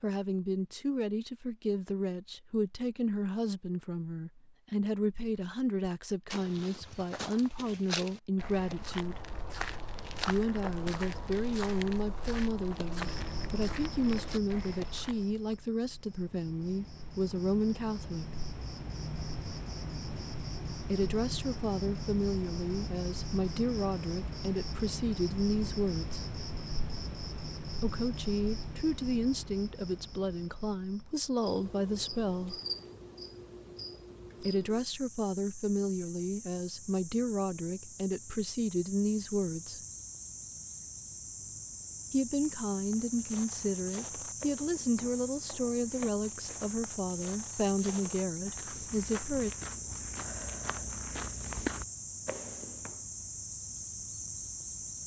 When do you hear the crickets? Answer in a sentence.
The crickets can be heard from 12.9 to 55.0 s.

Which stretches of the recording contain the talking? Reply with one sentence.
You can hear the talking from 0.0 to 9.3 s, from 10.2 to 18.4 s, from 20.9 to 26.2 s, from 27.7 to 32.6 s, from 34.4 to 39.8 s and from 42.1 to 49.5 s.